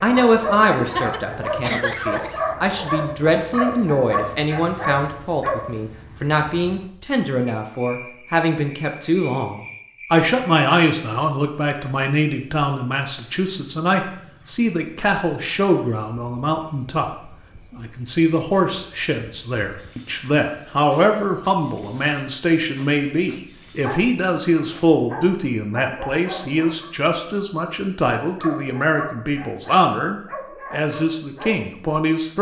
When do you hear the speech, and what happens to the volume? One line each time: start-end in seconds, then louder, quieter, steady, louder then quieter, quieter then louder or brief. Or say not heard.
0.0-32.3 steady.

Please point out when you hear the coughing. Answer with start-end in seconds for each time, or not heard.
0.8-2.4.